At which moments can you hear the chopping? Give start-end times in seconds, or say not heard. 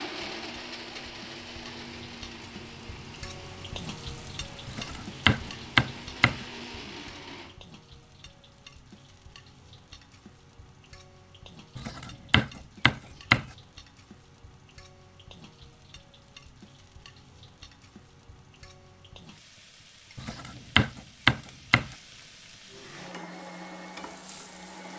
4.7-6.5, 11.8-13.5, 20.1-21.9.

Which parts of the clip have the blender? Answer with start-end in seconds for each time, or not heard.
0.0-7.7, 22.6-24.9.